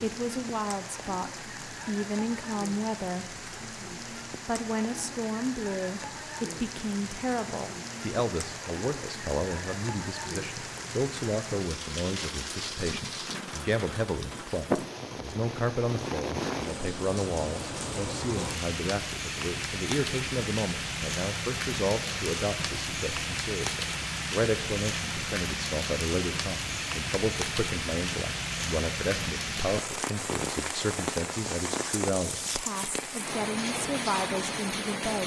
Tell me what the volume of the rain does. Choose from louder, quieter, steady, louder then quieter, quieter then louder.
louder.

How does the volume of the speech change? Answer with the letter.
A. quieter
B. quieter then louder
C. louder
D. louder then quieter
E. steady
E.